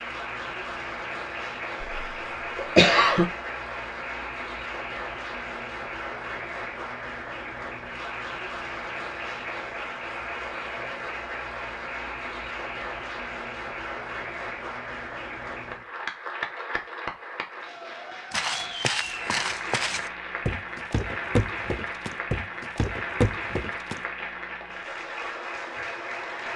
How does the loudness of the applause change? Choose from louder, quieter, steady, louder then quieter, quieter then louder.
steady.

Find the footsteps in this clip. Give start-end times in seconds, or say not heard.
18.3-24.0.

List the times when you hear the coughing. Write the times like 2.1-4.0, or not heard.
1.9-3.2.